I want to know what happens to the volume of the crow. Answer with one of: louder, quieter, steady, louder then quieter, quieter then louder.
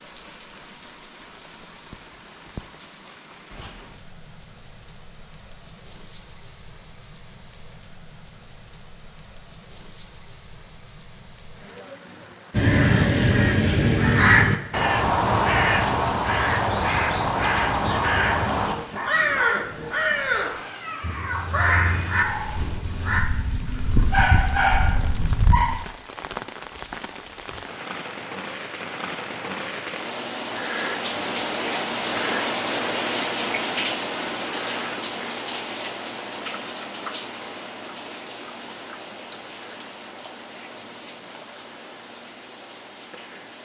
quieter.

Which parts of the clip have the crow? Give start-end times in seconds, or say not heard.
12.6-23.2.